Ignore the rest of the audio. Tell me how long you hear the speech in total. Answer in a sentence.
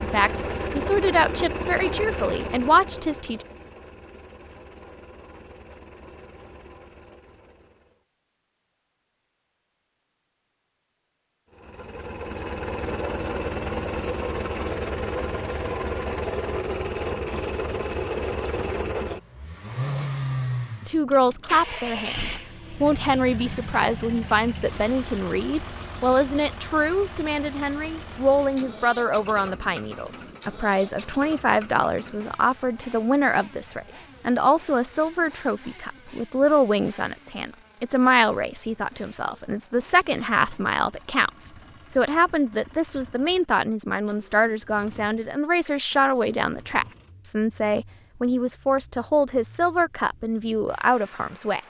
You can hear the speech for 34 seconds altogether.